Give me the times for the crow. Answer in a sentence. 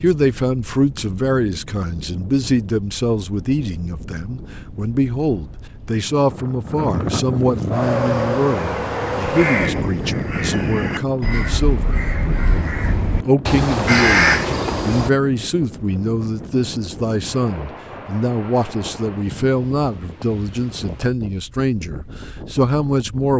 You can hear the crow from 7.8 to 15.1 s.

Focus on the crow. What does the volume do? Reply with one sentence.
The volume of the crow goes up.